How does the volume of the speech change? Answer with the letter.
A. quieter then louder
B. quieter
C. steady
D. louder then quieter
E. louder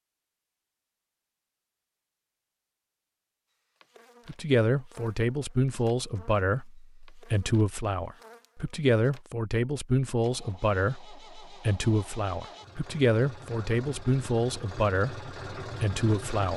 C.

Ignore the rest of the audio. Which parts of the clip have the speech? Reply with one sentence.
You can hear the speech from 4.2 to 16.5 s.